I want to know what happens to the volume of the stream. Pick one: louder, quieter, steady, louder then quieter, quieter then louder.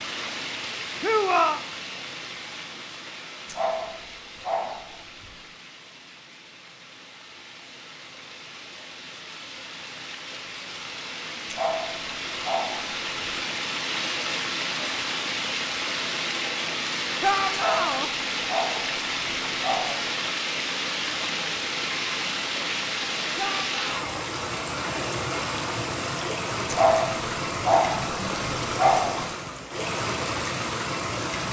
louder.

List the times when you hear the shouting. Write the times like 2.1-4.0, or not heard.
1.0-1.6, 17.2-18.1, 23.4-24.2.